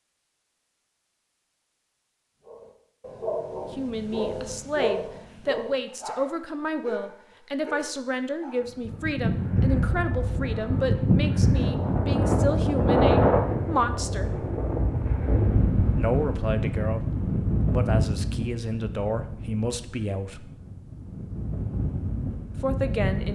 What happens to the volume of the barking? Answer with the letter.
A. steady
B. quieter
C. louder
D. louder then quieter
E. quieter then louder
B.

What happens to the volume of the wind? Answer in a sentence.
The volume of the wind goes down.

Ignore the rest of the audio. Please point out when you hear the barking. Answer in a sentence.
The barking can be heard from 2.4 to 8.7 s.